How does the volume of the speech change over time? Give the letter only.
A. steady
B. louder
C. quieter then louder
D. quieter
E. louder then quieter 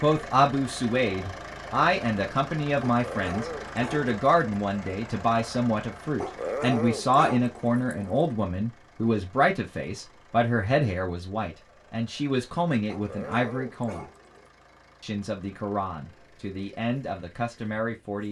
D.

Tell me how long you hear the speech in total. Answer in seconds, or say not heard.
17 s.